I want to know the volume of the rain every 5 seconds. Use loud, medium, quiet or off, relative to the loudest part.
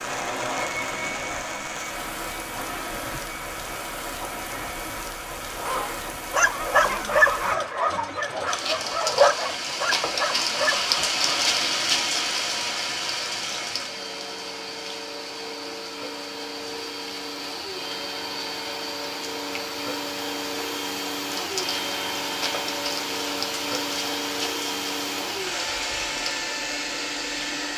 medium, medium, loud, medium, medium, medium.